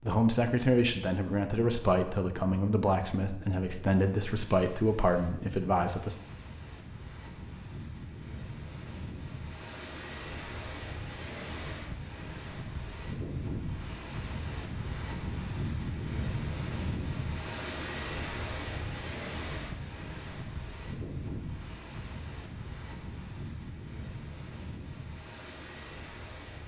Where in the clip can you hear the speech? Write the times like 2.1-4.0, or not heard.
0.0-6.2.